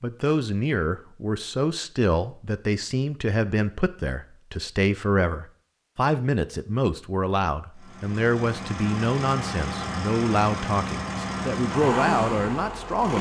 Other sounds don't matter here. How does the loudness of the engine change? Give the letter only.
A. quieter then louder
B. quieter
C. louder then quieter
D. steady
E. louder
E.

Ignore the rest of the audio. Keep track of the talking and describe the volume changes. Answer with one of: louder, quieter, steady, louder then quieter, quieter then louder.
steady.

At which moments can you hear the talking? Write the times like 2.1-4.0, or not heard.
0.0-13.1.